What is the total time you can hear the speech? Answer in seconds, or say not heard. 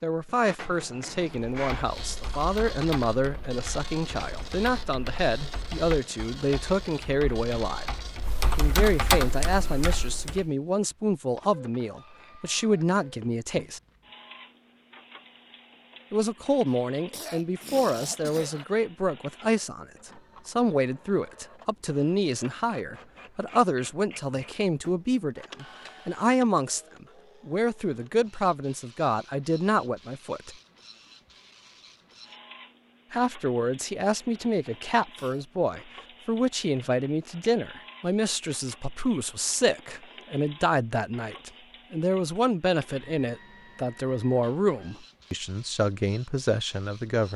42 s.